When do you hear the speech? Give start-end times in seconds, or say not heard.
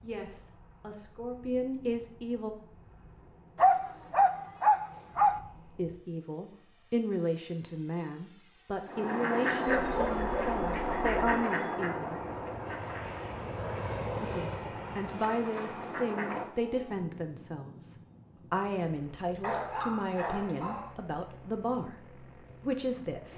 0.0-2.5, 5.7-12.2, 14.2-23.3.